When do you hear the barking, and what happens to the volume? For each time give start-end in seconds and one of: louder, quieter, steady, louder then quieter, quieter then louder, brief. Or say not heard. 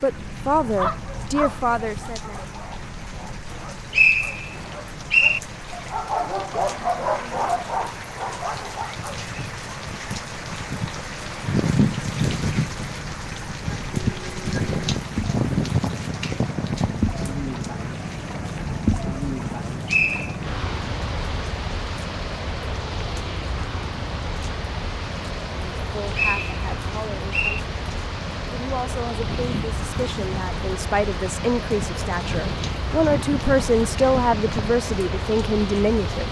0.6-9.3 quieter then louder.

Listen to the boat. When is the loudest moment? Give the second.
19 s.